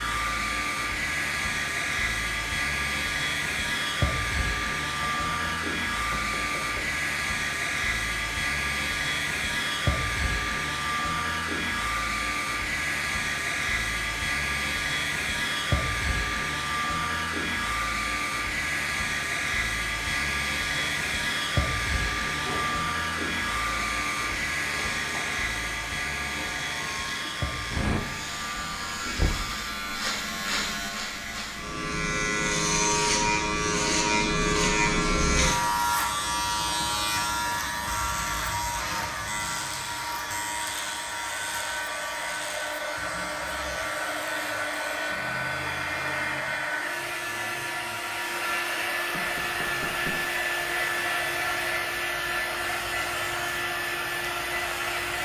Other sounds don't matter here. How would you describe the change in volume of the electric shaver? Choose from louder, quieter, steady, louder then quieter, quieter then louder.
louder then quieter.